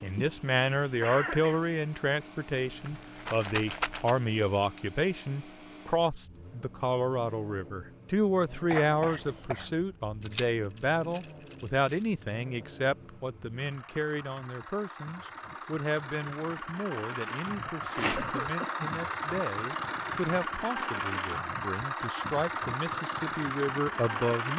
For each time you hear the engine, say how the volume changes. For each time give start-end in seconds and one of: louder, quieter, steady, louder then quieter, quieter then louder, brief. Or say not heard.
0.0-24.5 louder.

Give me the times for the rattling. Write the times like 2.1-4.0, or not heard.
2.6-4.2, 10.2-12.1, 17.9-18.4.